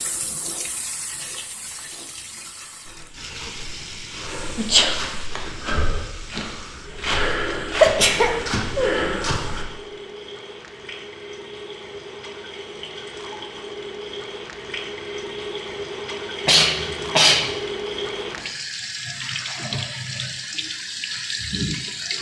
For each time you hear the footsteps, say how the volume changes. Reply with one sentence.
You can hear the footsteps from 2.9 to 9.7 s, getting louder.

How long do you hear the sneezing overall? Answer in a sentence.
You can hear the sneezing for 3 seconds altogether.